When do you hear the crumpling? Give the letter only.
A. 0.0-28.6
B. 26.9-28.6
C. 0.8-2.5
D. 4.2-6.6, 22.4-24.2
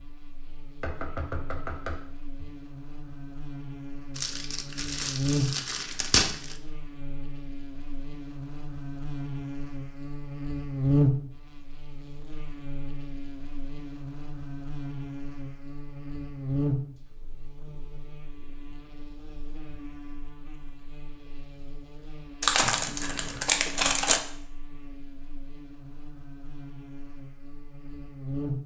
D.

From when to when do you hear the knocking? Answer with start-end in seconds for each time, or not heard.
0.8-2.5.